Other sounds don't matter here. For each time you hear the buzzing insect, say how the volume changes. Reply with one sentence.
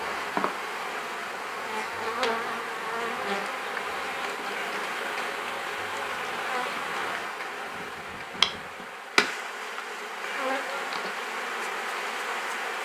You can hear the buzzing insect from 0.0 to 12.8 s, at a steady volume.